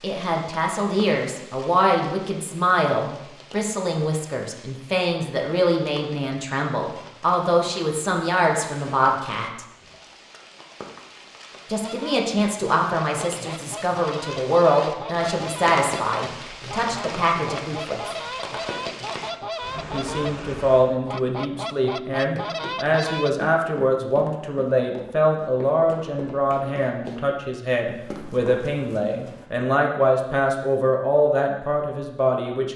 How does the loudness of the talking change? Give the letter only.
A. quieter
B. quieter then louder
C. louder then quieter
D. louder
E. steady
E.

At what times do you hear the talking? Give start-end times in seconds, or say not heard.
0.0-9.7, 11.7-18.1, 19.7-32.7.